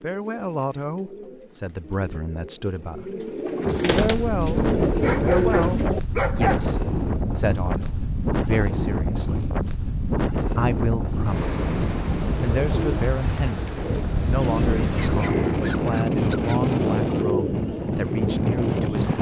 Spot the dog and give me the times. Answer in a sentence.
You can hear the dog from 4.8 to 6.8 s and from 14.9 to 16.6 s.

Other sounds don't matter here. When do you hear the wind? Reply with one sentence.
You can hear the wind from 3.6 to 19.1 s.